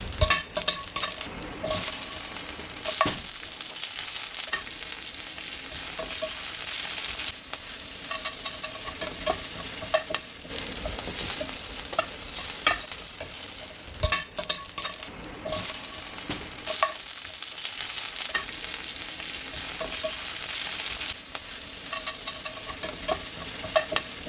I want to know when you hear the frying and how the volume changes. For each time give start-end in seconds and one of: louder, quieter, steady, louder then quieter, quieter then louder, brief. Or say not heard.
0.0-24.2 steady.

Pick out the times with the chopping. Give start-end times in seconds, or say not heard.
not heard.